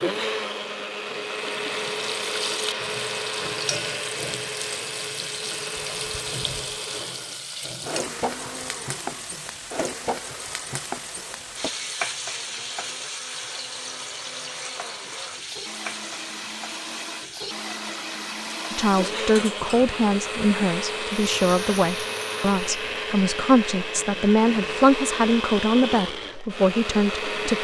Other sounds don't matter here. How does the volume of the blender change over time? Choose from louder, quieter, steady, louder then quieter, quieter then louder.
quieter then louder.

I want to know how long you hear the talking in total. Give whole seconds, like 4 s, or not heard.
9 s.